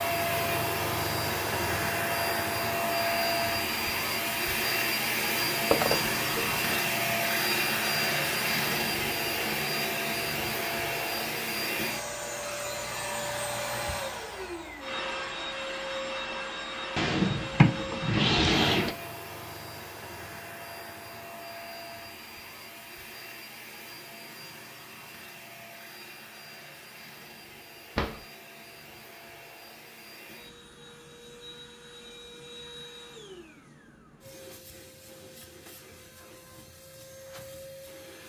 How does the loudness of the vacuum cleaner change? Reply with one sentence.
The loudness of the vacuum cleaner goes down.